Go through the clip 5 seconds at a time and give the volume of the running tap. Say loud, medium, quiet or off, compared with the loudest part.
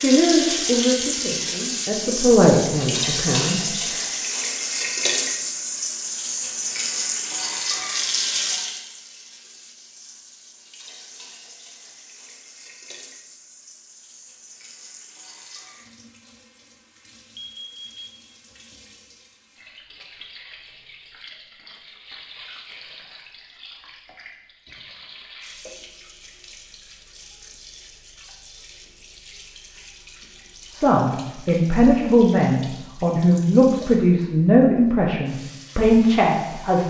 loud, loud, quiet, quiet, quiet, quiet, quiet, quiet.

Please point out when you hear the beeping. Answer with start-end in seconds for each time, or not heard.
17.4-18.2.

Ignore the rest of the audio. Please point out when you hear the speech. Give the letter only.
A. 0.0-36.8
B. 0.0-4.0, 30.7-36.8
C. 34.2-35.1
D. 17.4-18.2
B.